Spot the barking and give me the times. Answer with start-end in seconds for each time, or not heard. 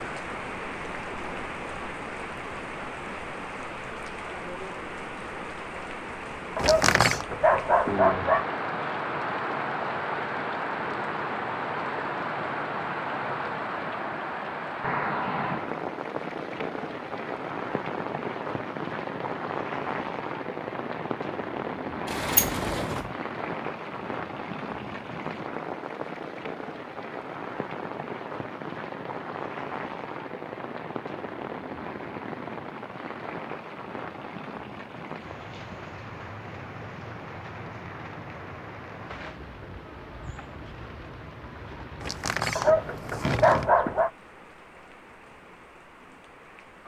6.5-8.4, 42.5-44.1.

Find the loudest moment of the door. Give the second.
7 s.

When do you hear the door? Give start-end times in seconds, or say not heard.
6.5-7.2, 22.1-23.1, 42.0-43.7.